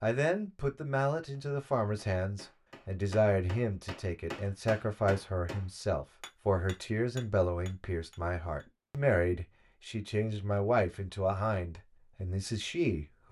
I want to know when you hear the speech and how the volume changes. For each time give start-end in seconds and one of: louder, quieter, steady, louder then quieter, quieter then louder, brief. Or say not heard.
0.0-13.2 steady.